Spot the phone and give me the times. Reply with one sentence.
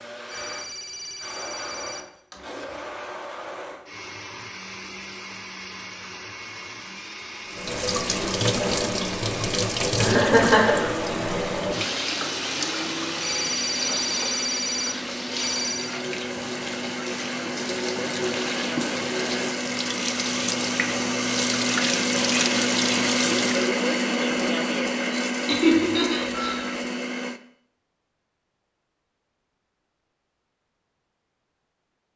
You can hear the phone from 0.2 to 2.0 s, from 13.2 to 15.9 s and from 25.7 to 26.8 s.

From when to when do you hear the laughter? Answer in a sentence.
You can hear the laughter from 9.9 to 10.9 s and from 25.4 to 26.6 s.